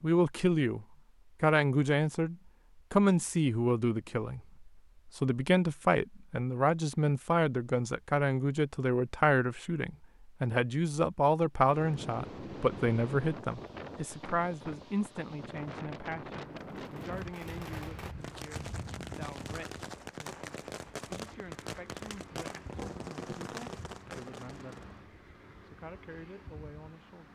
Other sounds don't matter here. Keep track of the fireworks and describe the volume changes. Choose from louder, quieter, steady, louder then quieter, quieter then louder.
steady.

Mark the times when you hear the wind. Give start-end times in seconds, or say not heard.
11.7-27.3.